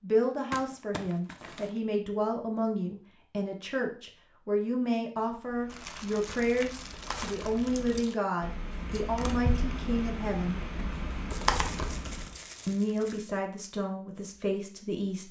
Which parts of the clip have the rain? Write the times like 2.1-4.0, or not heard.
not heard.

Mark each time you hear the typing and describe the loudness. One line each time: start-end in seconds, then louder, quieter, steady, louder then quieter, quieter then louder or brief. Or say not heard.
5.3-12.4 louder.